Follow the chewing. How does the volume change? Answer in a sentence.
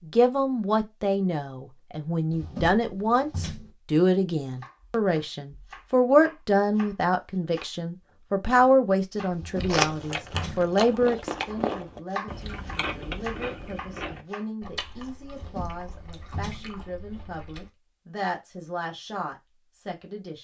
The volume of the chewing goes down.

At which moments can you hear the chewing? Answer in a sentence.
The chewing can be heard from 9.6 to 17.7 s.